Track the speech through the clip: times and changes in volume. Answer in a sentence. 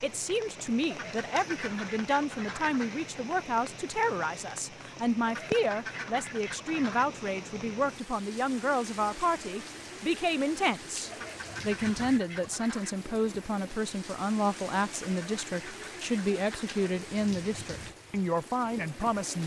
The speech can be heard from 0.0 to 19.4 s, at a steady volume.